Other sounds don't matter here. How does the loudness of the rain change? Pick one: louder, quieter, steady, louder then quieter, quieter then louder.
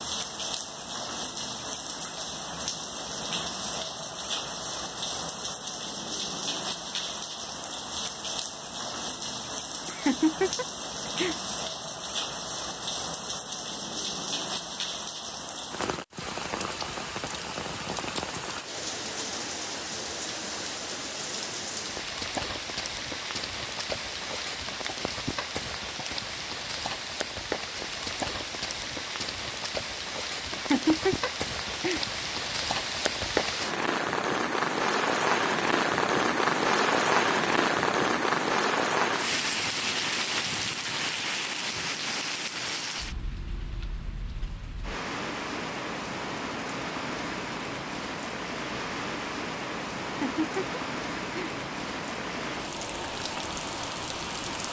louder then quieter.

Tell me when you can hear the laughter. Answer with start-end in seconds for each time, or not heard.
9.8-11.3, 30.5-32.0, 50.0-51.5.